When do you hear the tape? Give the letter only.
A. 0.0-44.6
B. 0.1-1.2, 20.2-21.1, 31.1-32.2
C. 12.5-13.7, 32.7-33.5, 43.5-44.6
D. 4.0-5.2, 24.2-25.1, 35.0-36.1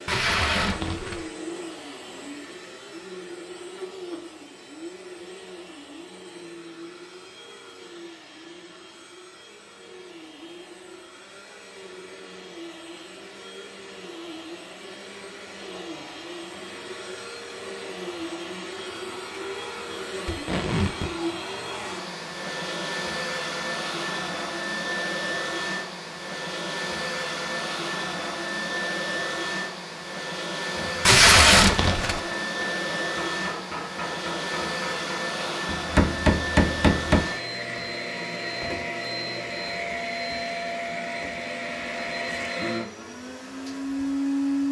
B.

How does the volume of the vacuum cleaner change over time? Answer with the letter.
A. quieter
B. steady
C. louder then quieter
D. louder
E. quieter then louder
D.